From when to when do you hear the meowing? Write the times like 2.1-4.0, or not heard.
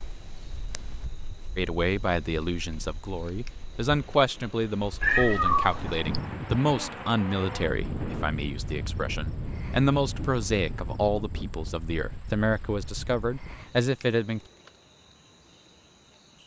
5.0-6.2.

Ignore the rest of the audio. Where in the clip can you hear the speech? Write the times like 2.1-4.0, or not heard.
1.6-14.4.